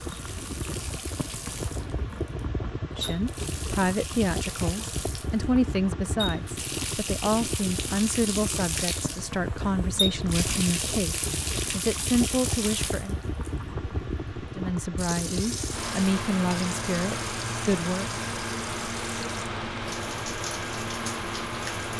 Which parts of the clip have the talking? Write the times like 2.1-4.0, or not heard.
2.9-13.2, 14.6-18.1.